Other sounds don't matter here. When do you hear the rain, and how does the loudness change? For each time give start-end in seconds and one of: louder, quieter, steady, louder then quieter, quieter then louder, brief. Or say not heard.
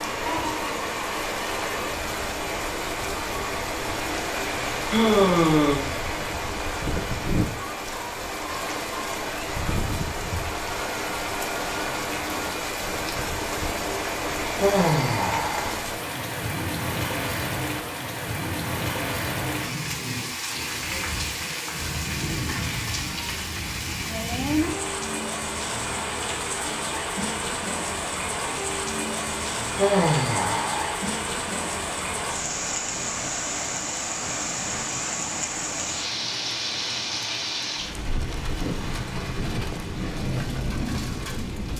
0.0-41.7 steady.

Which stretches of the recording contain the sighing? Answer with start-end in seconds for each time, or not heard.
4.9-5.9, 14.6-15.8, 29.8-30.9.